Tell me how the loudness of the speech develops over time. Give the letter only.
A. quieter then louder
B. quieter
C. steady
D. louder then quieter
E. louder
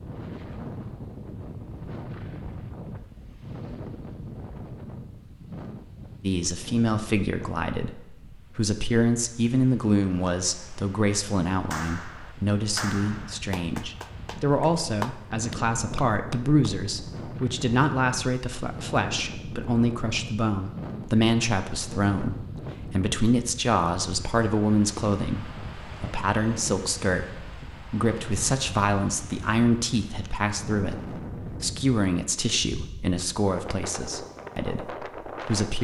C.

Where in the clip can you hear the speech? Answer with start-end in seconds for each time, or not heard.
6.2-35.8.